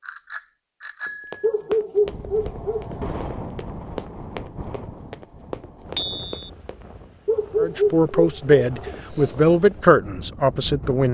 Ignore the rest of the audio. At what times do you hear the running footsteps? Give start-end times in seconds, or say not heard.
1.1-6.8.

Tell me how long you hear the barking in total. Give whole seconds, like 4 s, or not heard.
4 s.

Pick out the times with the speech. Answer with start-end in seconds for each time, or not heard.
7.6-11.0.